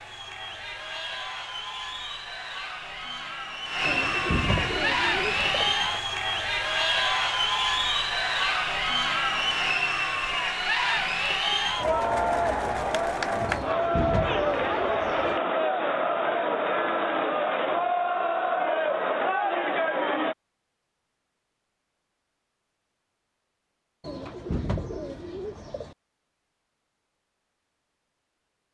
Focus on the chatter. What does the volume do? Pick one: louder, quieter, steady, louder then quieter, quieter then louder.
louder.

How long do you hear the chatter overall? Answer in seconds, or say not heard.
20 s.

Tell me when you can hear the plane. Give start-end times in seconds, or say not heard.
not heard.